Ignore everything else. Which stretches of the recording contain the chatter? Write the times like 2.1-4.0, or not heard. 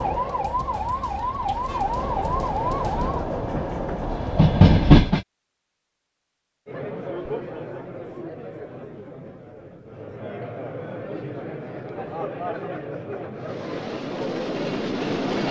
6.7-15.4.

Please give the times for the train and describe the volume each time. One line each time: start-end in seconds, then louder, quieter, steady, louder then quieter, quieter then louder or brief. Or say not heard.
0.0-5.2 louder
13.3-15.4 brief.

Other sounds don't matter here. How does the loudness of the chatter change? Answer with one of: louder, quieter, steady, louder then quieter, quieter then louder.
quieter then louder.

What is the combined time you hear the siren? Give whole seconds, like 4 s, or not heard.
3 s.